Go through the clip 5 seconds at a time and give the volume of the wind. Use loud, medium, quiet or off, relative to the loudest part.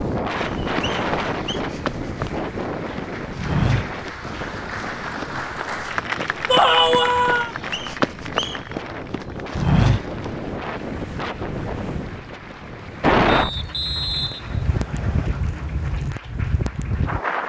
loud, medium, loud, loud.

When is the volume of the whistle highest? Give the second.
14 s.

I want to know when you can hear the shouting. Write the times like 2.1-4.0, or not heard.
6.5-7.5.